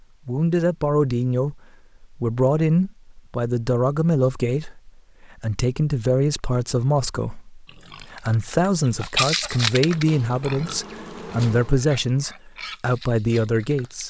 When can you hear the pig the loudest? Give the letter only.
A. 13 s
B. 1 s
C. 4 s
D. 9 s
D.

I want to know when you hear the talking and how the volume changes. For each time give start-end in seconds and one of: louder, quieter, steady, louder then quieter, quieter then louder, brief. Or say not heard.
0.2-14.0 steady.